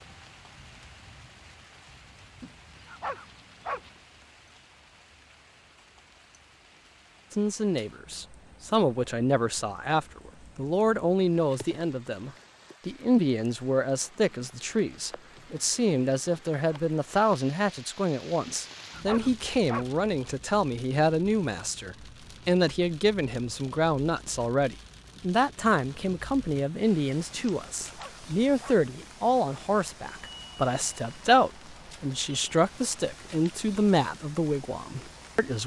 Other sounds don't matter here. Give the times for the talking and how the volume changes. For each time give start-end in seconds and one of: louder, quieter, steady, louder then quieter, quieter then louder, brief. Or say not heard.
7.3-35.6 steady.